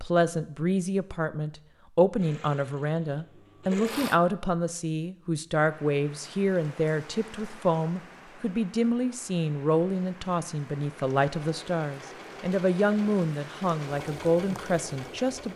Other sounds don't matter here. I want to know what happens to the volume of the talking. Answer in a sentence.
The volume of the talking stays about the same.